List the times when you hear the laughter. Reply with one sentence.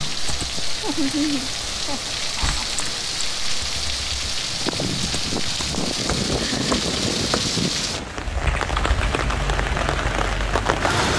You can hear the laughter from 0.8 to 2.6 s and from 6.5 to 7.0 s.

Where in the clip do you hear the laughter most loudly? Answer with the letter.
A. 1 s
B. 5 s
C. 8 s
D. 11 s
A.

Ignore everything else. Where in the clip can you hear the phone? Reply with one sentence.
The phone can't be heard in this clip.